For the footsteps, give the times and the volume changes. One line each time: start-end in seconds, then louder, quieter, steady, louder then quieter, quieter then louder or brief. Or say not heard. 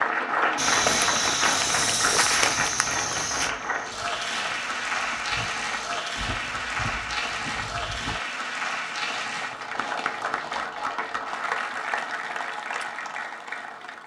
0.6-10.6 quieter.